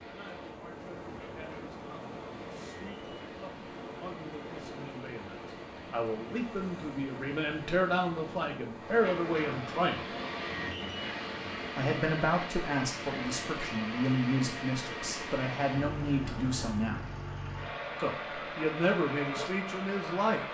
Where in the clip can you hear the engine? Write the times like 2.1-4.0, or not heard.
0.0-20.4.